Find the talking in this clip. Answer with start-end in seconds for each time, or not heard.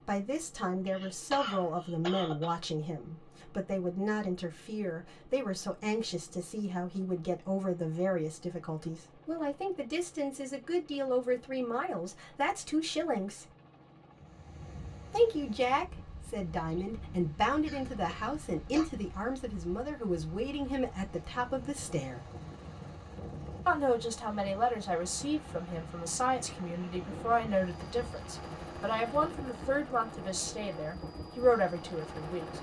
0.0-13.4, 15.1-22.2, 23.6-32.5.